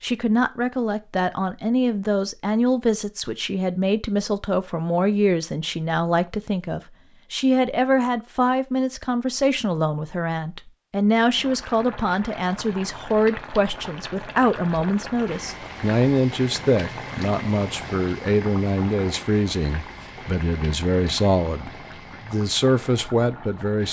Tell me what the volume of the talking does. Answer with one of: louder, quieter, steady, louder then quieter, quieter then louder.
steady.